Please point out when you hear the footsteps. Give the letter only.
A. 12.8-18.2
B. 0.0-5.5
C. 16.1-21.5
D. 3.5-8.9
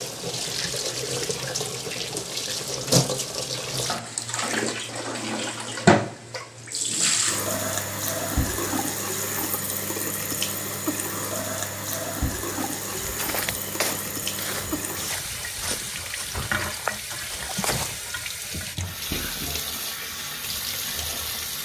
A.